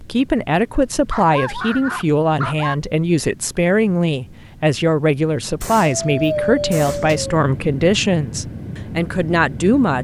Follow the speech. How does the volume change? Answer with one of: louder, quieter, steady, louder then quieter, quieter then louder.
steady.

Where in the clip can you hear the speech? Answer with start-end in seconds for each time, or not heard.
0.0-9.9.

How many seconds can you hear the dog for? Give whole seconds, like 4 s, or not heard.
3 s.